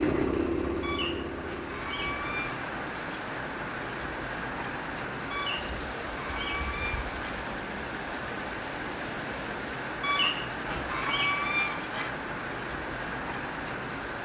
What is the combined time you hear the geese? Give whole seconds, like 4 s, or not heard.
6 s.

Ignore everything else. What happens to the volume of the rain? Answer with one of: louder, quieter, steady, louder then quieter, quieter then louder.
steady.